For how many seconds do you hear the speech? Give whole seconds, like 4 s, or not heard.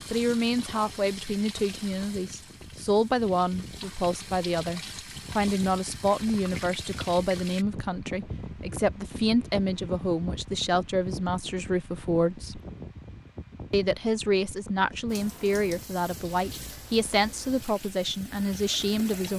18 s.